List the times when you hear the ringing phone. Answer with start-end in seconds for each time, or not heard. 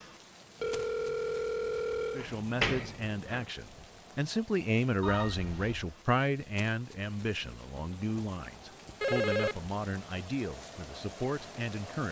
0.6-2.3, 5.0-5.9, 9.0-9.7.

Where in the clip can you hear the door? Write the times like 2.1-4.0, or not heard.
2.2-3.5.